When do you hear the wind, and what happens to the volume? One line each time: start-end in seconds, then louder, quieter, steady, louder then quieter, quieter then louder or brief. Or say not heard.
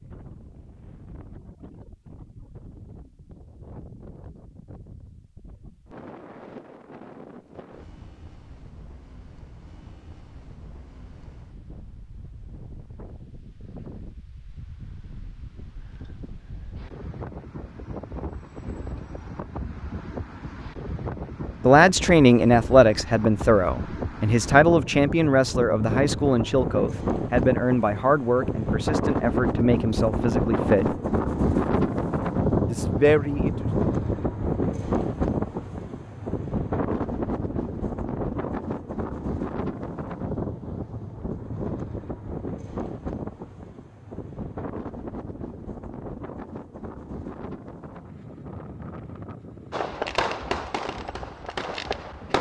0.0-52.3 louder then quieter.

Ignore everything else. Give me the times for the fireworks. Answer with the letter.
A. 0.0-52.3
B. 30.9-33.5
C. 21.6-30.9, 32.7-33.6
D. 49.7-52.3
D.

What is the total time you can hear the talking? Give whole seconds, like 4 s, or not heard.
10 s.